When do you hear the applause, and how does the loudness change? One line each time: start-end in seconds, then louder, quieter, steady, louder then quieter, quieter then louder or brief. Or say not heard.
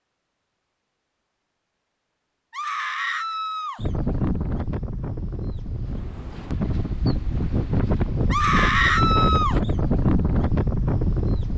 not heard.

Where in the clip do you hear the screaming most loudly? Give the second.
9 s.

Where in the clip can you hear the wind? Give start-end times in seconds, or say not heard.
3.8-11.5.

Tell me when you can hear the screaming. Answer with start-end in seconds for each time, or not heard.
2.5-3.8, 8.3-9.6.